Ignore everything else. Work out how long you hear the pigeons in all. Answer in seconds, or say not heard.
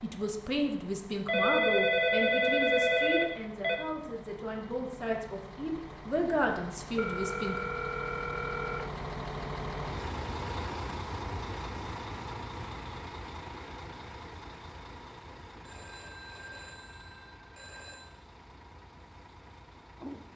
not heard.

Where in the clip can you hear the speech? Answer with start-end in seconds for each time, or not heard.
0.0-7.6.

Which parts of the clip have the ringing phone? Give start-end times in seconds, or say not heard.
1.2-3.8, 7.0-8.8, 15.7-18.2.